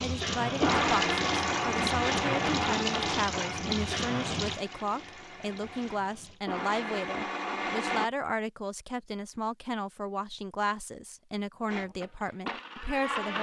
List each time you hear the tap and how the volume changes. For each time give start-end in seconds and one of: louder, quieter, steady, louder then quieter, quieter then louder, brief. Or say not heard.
0.0-6.4 quieter.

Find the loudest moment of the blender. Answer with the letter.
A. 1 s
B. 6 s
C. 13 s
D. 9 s
A.